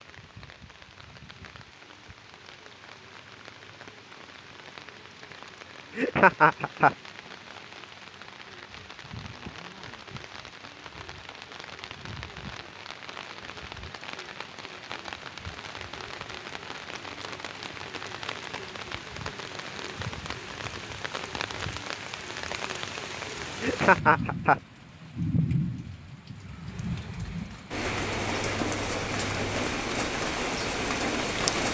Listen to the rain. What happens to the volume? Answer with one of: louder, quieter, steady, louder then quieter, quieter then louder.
louder.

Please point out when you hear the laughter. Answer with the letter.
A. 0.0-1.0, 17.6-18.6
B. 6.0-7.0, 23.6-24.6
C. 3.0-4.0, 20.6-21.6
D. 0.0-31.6
B.